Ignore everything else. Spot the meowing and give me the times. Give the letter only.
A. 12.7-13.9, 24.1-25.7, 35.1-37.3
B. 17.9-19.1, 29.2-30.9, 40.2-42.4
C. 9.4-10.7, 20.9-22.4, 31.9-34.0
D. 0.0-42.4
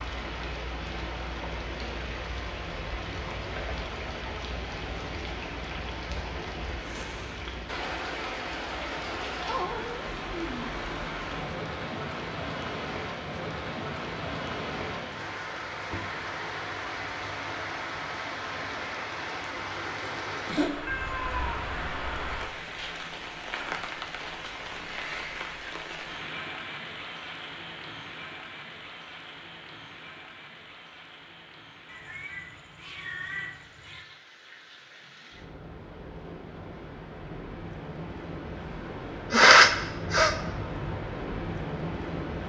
C.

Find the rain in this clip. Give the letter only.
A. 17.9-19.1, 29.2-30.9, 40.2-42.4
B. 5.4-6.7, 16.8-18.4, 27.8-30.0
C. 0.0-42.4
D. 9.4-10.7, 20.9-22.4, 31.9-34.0
C.